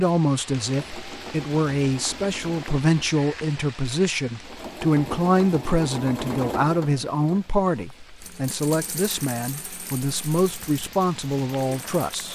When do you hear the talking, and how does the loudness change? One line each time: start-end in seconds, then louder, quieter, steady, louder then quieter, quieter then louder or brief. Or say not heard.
0.0-12.2 steady.